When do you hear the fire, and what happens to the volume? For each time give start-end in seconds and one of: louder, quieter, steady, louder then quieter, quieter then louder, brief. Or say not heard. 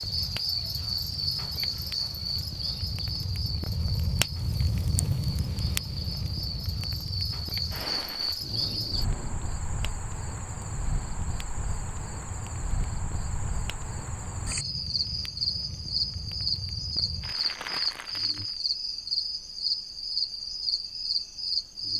0.0-18.6 louder then quieter.